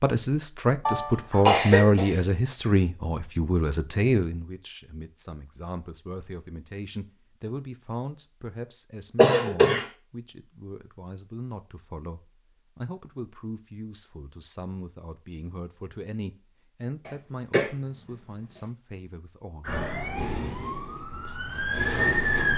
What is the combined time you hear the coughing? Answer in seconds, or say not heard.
3 s.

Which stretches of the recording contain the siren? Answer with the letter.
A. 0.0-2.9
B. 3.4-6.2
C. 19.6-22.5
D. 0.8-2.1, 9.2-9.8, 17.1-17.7
C.